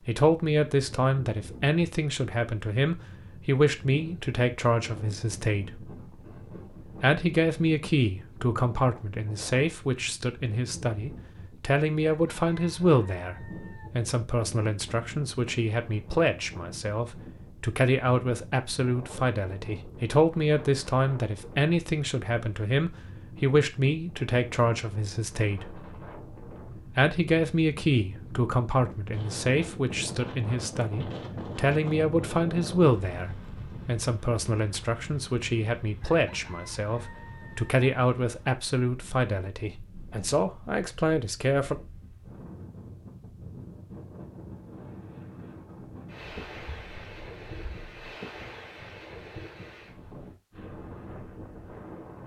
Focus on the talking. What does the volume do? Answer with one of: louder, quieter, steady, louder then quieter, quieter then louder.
steady.